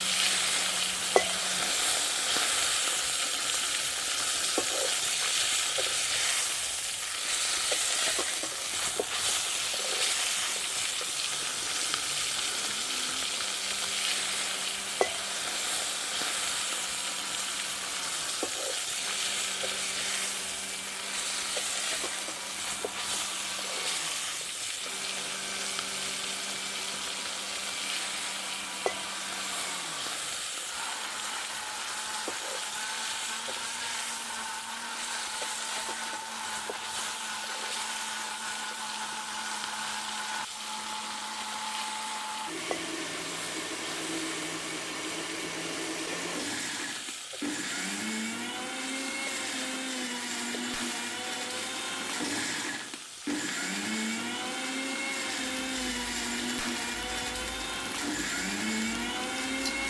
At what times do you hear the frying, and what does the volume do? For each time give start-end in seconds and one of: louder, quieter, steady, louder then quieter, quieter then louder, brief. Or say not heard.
0.0-59.8 quieter.